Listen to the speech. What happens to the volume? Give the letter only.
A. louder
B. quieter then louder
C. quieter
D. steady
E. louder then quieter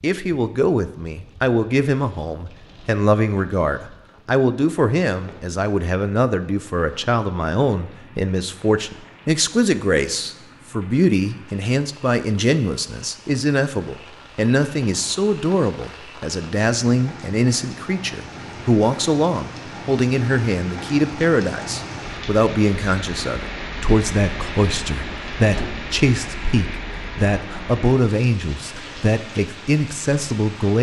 D.